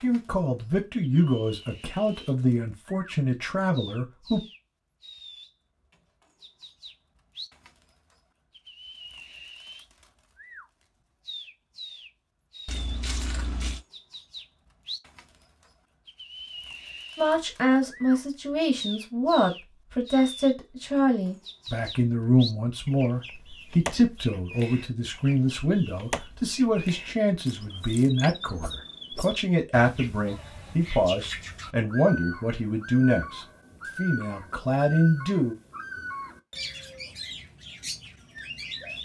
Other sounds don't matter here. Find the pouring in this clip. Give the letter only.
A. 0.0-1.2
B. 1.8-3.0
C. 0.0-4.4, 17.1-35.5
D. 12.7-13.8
D.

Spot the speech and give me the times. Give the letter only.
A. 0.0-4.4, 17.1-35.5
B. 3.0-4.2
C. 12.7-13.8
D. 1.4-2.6
A.